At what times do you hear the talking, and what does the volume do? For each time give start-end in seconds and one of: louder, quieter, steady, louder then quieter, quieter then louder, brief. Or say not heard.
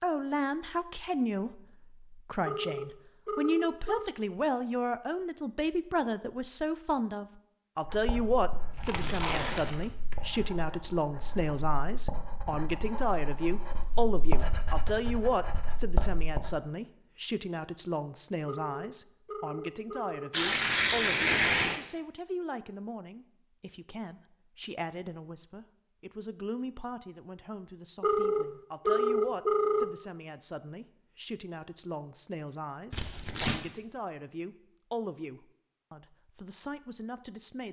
0.0-37.6 quieter.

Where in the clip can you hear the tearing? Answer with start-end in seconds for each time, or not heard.
8.8-10.2, 20.3-21.8, 32.9-33.6.